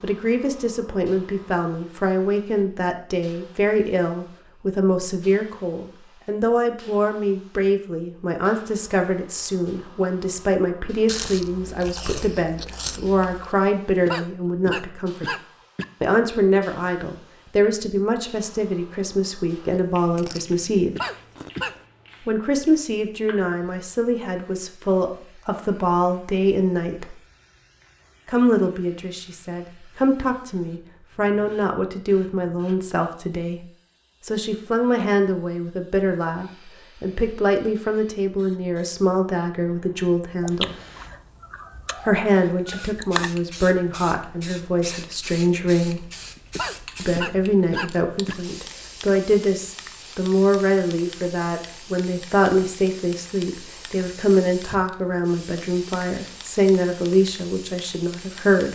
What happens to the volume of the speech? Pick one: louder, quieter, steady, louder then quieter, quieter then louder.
steady.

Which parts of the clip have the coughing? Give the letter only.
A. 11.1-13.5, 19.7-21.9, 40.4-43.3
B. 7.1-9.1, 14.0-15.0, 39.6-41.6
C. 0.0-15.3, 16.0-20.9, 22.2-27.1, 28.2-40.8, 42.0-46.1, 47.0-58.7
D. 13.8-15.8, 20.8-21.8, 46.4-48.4
D.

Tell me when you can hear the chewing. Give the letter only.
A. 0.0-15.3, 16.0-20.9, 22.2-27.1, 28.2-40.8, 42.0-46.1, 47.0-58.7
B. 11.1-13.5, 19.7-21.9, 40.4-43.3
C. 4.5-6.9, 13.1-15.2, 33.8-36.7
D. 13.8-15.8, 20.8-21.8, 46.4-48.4
B.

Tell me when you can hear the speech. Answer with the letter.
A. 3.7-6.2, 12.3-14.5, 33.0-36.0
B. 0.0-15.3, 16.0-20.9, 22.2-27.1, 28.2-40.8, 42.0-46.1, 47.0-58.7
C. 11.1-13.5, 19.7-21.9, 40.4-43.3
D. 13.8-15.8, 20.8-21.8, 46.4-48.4
B.